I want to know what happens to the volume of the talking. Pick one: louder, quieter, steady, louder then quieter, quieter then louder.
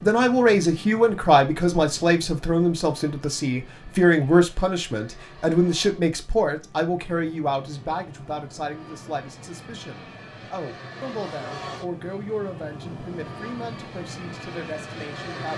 quieter.